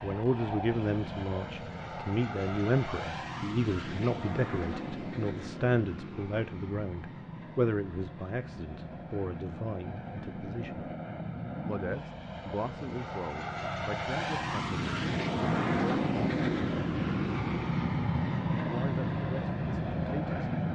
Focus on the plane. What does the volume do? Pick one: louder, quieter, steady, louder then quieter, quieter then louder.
louder.